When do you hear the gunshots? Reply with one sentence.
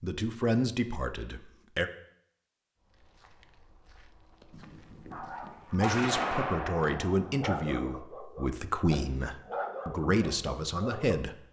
You can hear the gunshots from 4.5 to 7.4 s.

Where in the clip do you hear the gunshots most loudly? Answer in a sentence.
The volume of the gunshots peaks at 6 seconds.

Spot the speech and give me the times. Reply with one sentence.
The speech can be heard from 0.0 to 1.9 s and from 5.7 to 11.4 s.